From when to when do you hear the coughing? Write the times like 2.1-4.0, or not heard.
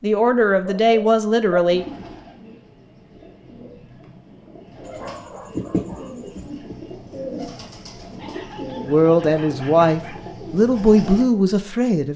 5.5-6.8.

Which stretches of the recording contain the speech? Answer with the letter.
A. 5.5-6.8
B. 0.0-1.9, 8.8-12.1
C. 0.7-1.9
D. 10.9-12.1
B.